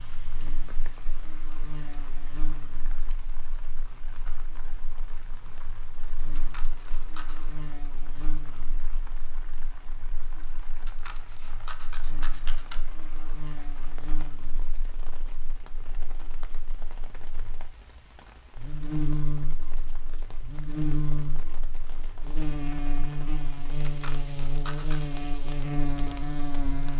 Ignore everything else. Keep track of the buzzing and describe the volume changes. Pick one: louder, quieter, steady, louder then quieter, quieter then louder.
louder.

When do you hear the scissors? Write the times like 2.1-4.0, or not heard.
6.3-7.5, 10.8-12.8, 23.8-25.1.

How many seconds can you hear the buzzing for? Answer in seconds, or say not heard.
27 s.